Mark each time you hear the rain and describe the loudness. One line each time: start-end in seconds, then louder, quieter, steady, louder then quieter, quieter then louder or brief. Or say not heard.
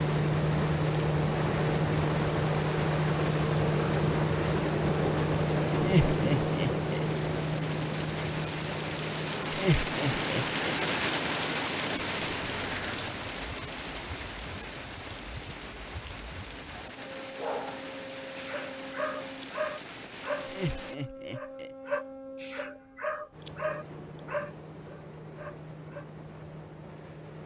0.0-20.9 louder then quieter.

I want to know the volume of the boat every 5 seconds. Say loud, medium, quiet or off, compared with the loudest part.
loud, loud, quiet, quiet, quiet, quiet.